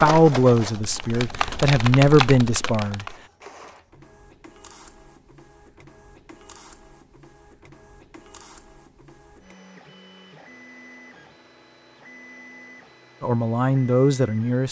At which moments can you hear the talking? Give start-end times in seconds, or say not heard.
0.0-3.1, 13.2-14.6.